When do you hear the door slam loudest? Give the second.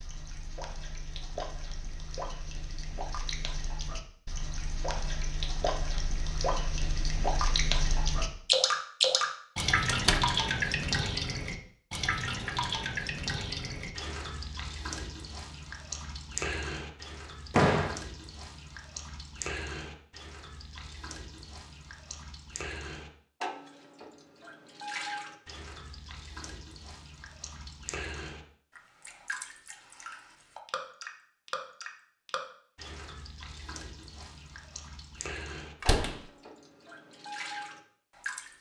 18 s.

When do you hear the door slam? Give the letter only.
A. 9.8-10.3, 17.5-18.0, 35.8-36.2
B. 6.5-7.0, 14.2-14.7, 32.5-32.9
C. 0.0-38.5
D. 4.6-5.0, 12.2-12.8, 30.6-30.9
A.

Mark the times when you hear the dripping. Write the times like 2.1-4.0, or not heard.
0.0-38.5.